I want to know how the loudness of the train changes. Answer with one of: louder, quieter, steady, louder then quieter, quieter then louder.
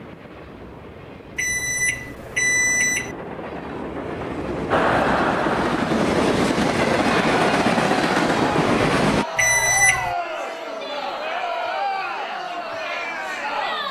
louder.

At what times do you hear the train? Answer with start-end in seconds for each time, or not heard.
0.0-9.2.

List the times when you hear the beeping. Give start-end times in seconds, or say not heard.
1.4-3.1, 9.3-10.2.